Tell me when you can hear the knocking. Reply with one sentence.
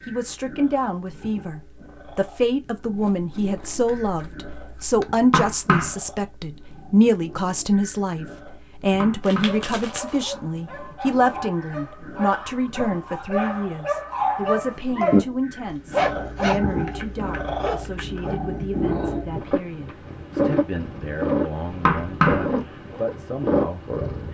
You can hear the knocking from 5.3 to 6.0 s, from 9.0 to 9.6 s and from 21.9 to 22.4 s.